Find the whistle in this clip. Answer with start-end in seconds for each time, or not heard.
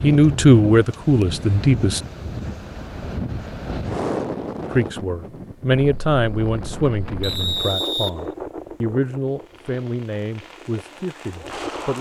7.2-8.2.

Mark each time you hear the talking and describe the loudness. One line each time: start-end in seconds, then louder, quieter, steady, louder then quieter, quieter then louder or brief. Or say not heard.
0.0-2.0 brief
4.7-11.9 quieter.